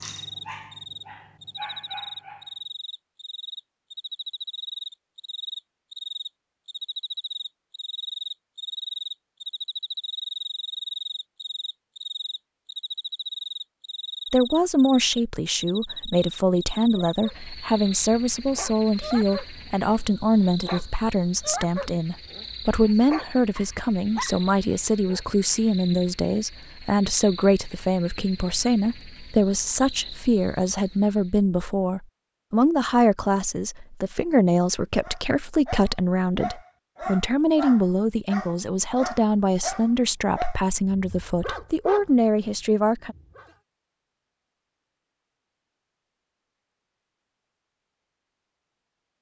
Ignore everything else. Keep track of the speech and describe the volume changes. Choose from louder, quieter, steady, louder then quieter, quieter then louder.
steady.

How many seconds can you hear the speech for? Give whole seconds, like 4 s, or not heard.
29 s.